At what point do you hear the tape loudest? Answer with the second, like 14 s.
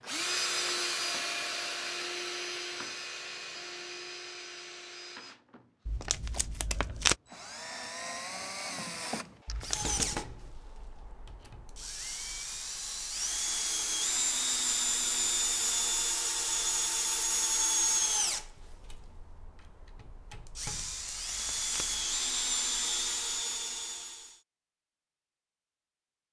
7 s.